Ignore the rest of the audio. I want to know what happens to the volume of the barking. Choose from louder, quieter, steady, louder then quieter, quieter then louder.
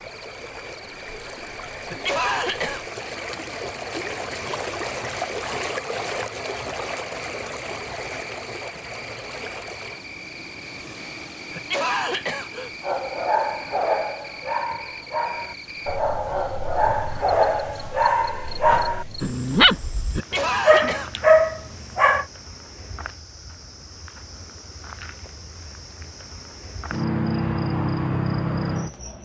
louder.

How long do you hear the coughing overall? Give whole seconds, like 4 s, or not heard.
3 s.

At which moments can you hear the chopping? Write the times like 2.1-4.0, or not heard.
not heard.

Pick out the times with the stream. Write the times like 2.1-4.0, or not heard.
0.0-22.0.